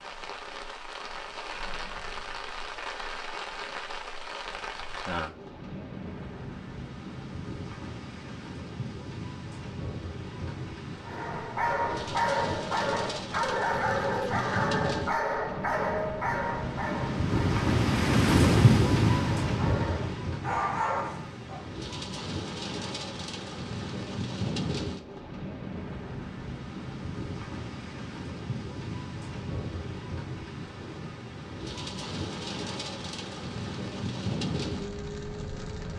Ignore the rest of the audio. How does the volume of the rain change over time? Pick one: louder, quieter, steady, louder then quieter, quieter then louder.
louder then quieter.